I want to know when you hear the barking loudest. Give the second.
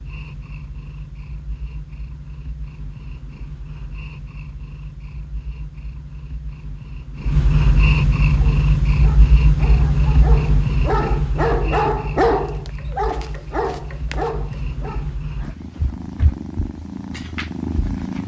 12 s.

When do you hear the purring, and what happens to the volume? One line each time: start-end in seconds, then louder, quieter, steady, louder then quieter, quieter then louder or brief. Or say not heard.
0.0-18.2 louder then quieter.